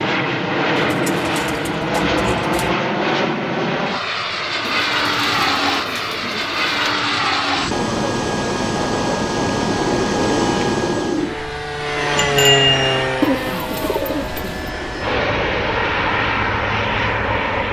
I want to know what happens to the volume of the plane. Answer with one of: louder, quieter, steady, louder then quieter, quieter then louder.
steady.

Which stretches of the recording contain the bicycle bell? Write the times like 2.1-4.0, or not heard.
12.2-13.1.